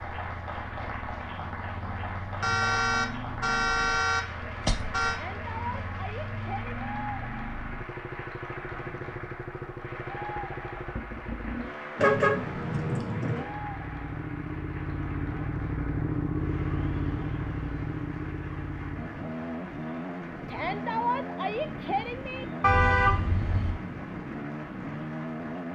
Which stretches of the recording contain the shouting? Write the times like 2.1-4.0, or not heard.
5.0-6.8, 20.4-22.4.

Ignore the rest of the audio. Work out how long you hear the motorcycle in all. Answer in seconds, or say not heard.
26 s.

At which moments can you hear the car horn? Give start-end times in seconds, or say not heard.
2.4-5.2, 11.9-13.4, 22.6-23.8.